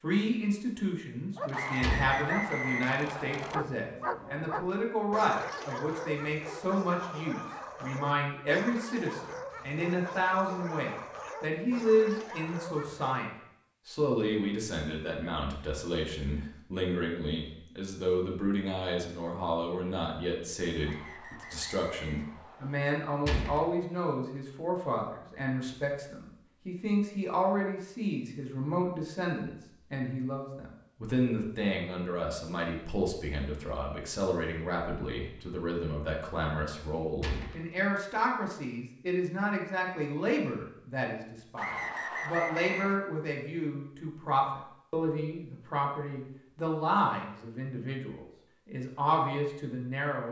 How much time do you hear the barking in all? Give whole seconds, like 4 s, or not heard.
12 s.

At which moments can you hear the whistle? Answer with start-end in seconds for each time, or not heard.
1.5-3.5, 20.9-22.9, 41.5-43.0.